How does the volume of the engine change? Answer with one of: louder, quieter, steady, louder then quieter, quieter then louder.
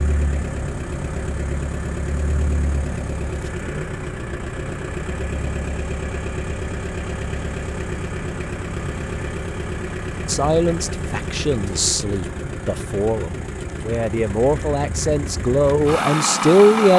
steady.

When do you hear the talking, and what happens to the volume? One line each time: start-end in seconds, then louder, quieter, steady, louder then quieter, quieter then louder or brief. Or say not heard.
10.2-16.9 louder.